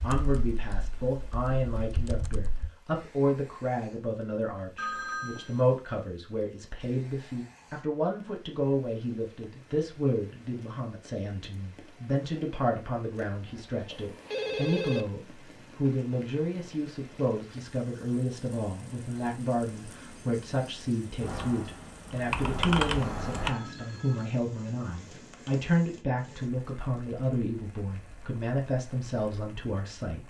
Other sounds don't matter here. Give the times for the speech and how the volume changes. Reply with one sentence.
The speech can be heard from 0.0 to 30.2 s, at a steady volume.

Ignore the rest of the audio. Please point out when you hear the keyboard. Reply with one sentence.
The keyboard can be heard from 0.0 to 2.7 s and from 21.2 to 23.6 s.